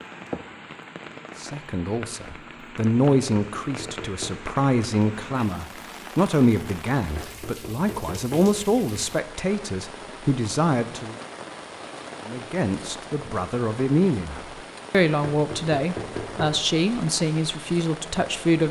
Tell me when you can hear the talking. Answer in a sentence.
The talking can be heard from 1.4 to 11.2 s and from 12.2 to 18.6 s.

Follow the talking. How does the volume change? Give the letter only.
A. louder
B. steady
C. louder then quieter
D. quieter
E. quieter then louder
B.